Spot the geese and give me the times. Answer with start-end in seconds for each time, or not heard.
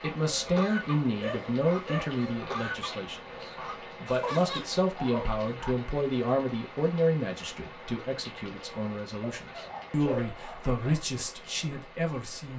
0.1-4.8.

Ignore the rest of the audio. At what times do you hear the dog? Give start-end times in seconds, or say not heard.
1.0-2.4, 4.2-5.8, 9.2-11.1.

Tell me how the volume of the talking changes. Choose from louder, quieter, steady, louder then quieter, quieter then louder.
quieter then louder.